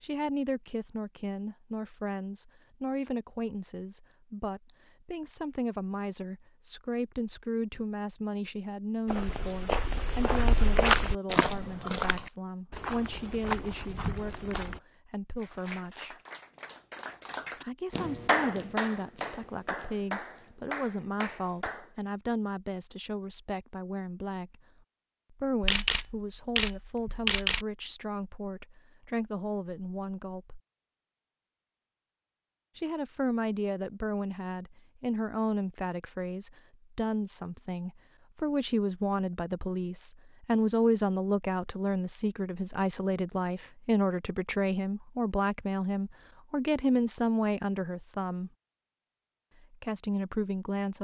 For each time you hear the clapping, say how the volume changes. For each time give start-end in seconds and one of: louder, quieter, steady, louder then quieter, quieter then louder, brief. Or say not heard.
15.4-21.9 louder then quieter.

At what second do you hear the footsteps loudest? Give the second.
11 s.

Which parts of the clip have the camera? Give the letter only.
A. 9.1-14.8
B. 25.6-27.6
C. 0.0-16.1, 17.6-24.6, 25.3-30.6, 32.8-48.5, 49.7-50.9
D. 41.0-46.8
B.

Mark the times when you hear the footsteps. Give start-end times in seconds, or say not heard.
9.1-14.8.